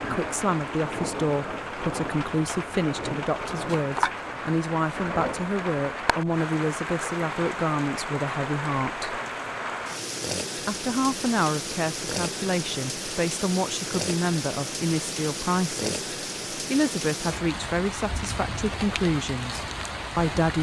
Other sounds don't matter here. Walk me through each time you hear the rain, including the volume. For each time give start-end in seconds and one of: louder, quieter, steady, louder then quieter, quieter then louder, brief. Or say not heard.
0.0-20.5 steady.